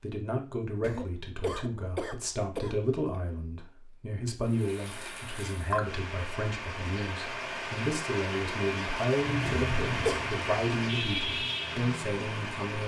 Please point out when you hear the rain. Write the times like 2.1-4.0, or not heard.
4.4-12.8.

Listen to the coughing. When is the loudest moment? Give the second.
10 s.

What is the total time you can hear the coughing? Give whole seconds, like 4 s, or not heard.
3 s.